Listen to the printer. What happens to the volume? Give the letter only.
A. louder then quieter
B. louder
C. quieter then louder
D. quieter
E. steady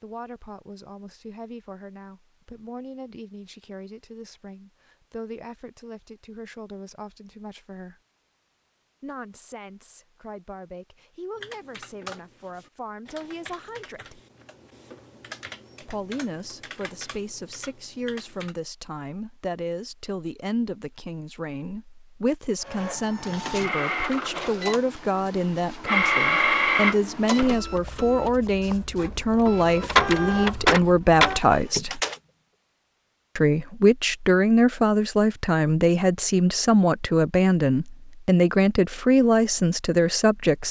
B.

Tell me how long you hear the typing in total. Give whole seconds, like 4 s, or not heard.
7 s.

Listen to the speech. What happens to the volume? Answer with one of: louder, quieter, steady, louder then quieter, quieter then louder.
louder.